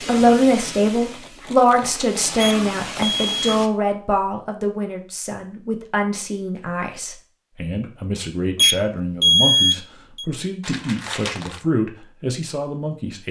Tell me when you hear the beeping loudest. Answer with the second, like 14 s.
9 s.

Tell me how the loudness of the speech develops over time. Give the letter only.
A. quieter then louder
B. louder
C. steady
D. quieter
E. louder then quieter
D.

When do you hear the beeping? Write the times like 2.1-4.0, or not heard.
2.4-3.5, 8.6-10.2.